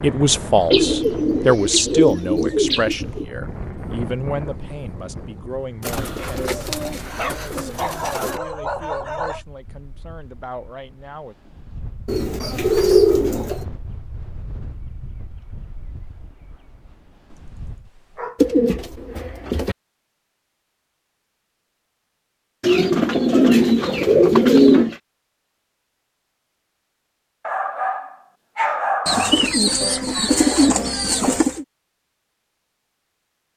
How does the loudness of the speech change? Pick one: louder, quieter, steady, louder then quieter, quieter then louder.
quieter.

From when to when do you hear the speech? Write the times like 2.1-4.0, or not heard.
0.0-11.3.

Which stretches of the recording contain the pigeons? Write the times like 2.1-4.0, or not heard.
0.7-3.2, 5.8-8.4, 12.1-13.7, 18.4-19.8, 22.6-24.9, 29.1-31.6.